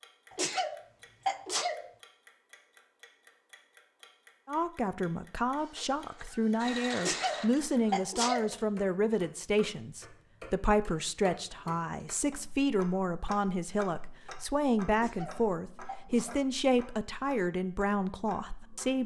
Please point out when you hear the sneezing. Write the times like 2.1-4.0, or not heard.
0.3-1.9, 7.0-8.6, 14.9-16.4.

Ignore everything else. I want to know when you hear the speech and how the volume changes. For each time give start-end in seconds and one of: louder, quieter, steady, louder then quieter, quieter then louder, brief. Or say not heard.
4.5-19.0 steady.